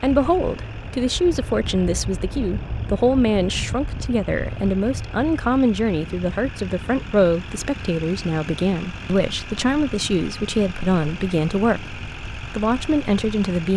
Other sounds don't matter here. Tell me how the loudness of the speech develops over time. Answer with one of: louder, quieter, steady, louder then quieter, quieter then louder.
steady.